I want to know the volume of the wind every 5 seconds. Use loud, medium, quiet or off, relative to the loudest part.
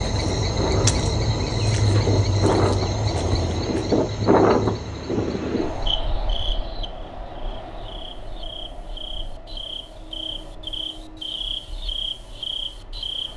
loud, medium, quiet.